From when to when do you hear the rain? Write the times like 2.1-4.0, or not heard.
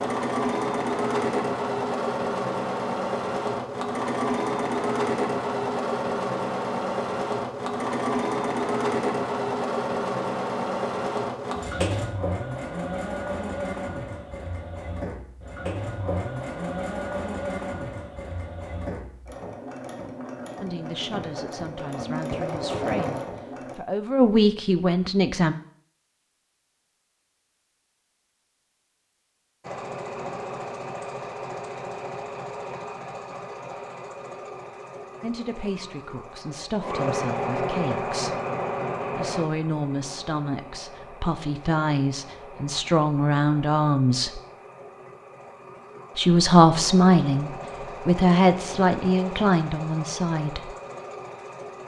not heard.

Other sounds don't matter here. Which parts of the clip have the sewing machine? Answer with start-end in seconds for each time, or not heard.
0.0-23.8, 29.6-51.8.